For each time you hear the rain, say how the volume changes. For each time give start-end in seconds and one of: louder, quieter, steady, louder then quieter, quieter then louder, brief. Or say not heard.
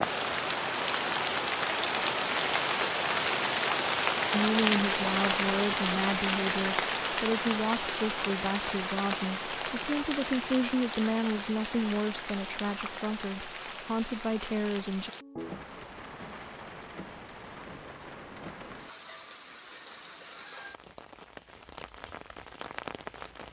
0.0-23.4 quieter.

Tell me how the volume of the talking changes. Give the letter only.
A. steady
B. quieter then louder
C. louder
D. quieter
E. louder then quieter
A.